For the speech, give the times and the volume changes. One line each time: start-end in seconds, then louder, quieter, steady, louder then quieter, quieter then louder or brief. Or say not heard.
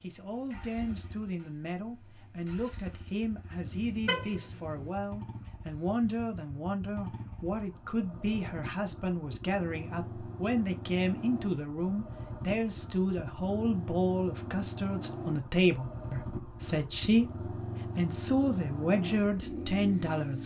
0.0-20.4 louder.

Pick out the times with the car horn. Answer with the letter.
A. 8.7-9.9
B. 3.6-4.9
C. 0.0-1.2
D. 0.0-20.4
B.